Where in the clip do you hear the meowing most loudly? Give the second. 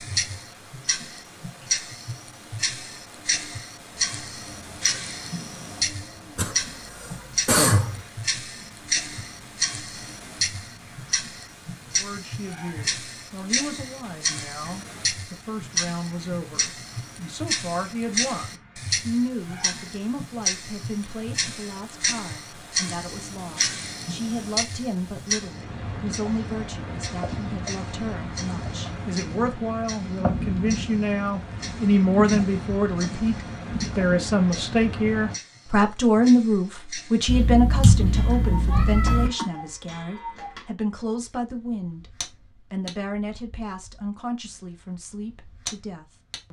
38 s.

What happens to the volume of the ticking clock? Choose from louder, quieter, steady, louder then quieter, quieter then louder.
quieter.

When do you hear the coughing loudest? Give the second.
8 s.